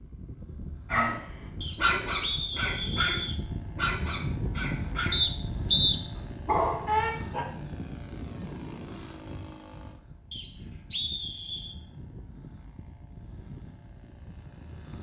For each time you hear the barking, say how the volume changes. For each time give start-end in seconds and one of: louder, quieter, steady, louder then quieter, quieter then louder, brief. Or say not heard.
0.9-7.5 quieter then louder.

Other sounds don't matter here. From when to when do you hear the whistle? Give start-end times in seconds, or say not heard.
1.6-3.4, 5.1-6.0, 10.3-11.8.